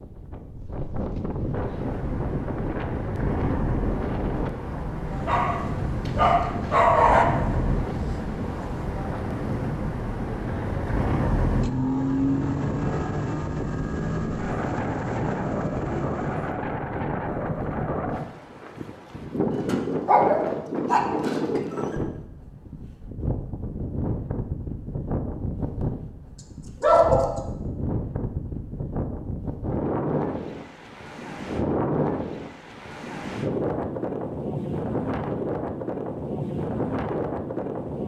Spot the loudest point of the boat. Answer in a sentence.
The loudest moment of the boat is at 12 seconds.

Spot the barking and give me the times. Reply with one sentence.
The barking can be heard from 5.2 to 7.2 s, from 19.6 to 21.8 s and from 26.8 to 27.4 s.